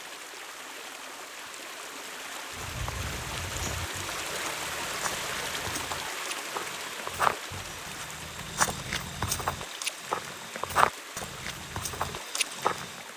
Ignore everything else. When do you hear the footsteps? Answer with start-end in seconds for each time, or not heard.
2.5-13.1.